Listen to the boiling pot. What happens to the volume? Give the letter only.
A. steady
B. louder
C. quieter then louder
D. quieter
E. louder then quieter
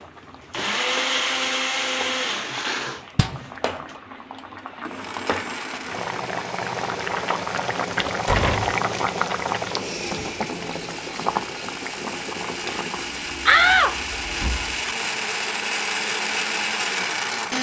E.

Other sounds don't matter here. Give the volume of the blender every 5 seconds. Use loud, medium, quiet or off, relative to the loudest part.
loud, medium, medium, loud.